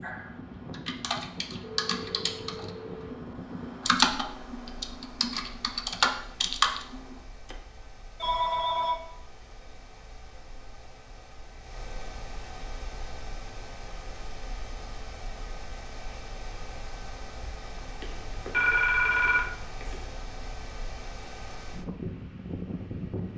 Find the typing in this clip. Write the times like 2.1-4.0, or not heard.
0.0-7.5.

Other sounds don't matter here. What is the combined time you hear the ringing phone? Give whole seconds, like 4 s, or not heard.
5 s.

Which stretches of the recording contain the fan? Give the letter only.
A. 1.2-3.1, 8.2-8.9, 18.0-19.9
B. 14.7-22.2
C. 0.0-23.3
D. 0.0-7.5
C.